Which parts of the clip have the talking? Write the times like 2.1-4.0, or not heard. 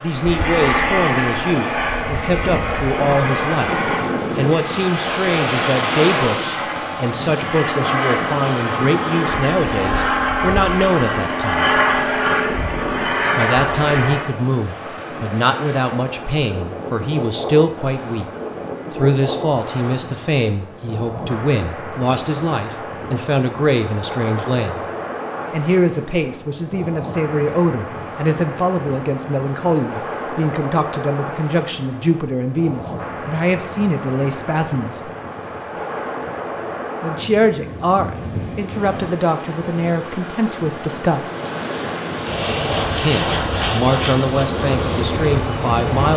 0.0-11.7, 13.3-18.2, 18.9-24.9, 25.5-35.1, 37.0-41.3, 43.0-46.1.